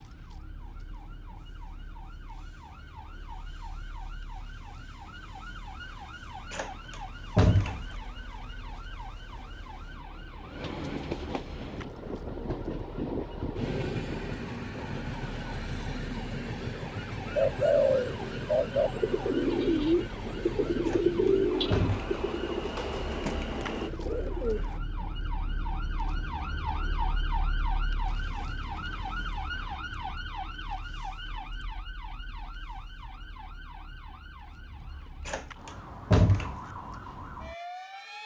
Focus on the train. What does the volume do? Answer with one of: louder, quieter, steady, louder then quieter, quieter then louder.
louder.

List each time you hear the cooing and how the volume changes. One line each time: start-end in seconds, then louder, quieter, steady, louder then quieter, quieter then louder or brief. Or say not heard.
17.4-24.8 quieter.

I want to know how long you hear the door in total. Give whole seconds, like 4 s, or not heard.
4 s.